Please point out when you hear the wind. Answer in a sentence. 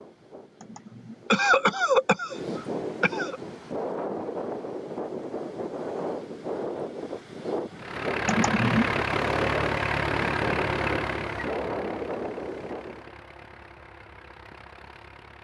You can hear the wind from 0.0 to 13.2 s.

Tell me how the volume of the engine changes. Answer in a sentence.
The loudness of the engine goes down.